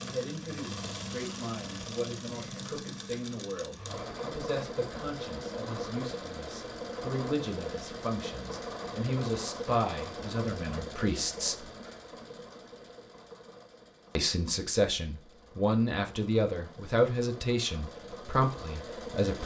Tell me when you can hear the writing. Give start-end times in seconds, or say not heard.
not heard.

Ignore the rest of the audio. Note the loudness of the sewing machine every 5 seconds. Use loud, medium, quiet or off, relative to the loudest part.
loud, loud, medium, medium.